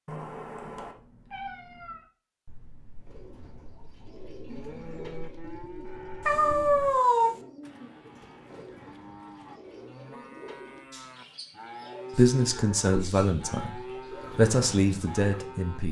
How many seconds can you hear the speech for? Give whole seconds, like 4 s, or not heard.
4 s.